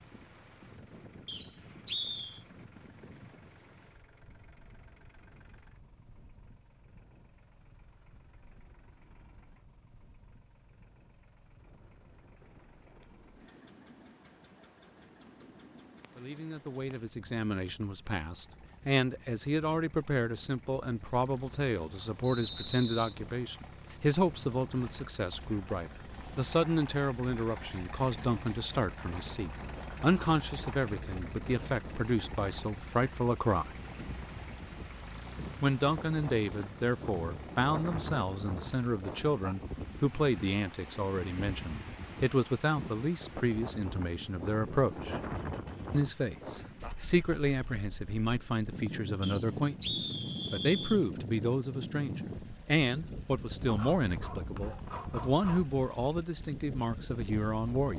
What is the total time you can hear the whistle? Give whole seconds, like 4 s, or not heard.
4 s.